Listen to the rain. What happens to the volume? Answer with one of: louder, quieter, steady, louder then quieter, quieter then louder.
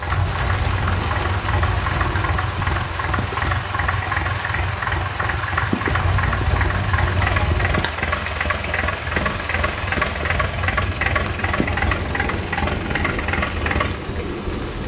steady.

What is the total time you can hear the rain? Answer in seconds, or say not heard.
15 s.